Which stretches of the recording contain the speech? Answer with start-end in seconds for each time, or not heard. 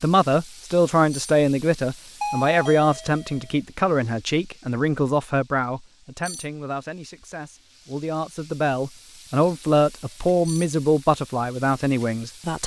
0.0-12.6.